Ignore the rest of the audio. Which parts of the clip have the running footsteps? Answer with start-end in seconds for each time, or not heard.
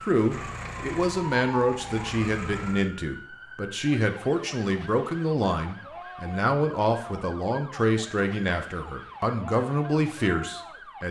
not heard.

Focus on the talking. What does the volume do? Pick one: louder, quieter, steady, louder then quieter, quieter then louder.
steady.